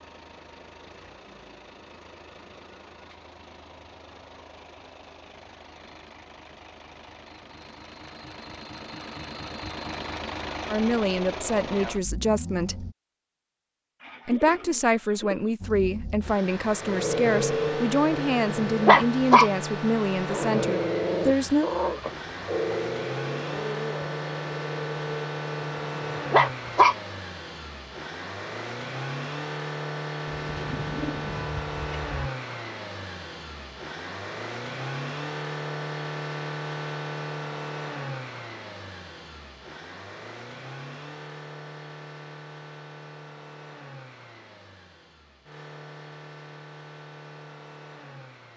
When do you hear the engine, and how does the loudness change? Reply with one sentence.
The engine can be heard from 0.0 to 12.9 s, getting louder; and from 15.6 to 48.5 s, getting quieter.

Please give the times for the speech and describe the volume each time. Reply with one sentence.
The speech can be heard briefly from 10.7 to 12.8 s; and from 14.2 to 21.7 s, at a steady volume.